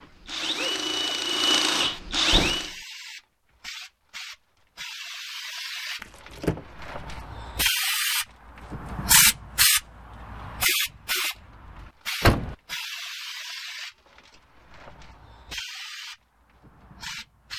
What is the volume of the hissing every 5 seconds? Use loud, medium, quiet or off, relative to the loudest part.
quiet, loud, medium, quiet.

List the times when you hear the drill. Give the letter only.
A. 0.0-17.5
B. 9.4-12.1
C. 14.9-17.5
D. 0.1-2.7
D.